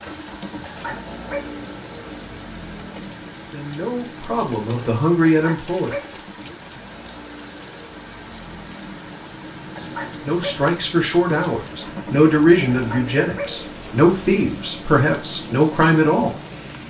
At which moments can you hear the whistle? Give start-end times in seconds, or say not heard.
not heard.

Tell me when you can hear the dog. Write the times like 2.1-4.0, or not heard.
0.7-1.6, 5.3-6.2, 9.8-10.7, 12.7-13.6.